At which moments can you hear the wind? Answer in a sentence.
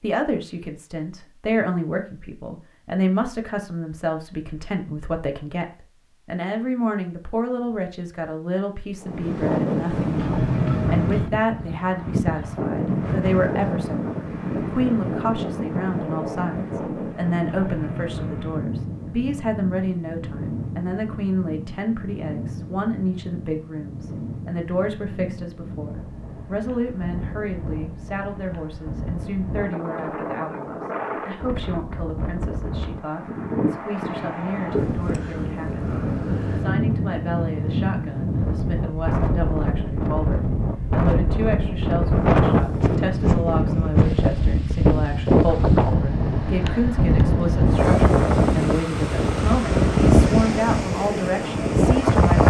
The wind can be heard from 9.0 to 52.4 s.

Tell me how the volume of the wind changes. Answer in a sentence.
The volume of the wind goes down, then up.